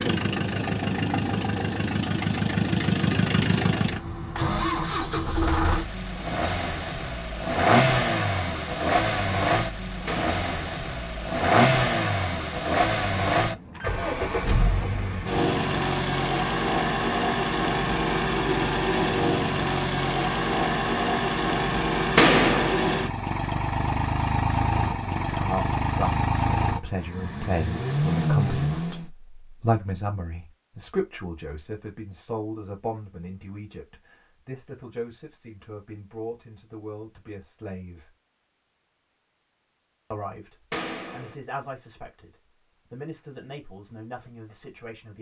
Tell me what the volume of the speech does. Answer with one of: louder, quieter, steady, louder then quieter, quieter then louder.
quieter.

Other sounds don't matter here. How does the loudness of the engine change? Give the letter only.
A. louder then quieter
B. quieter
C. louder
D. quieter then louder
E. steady
E.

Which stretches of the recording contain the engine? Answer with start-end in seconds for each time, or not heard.
0.0-29.1.